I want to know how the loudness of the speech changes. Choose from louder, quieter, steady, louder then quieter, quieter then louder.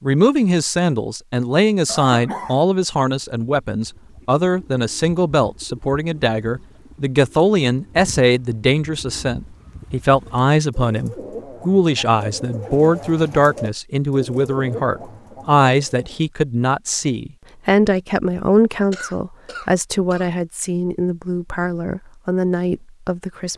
steady.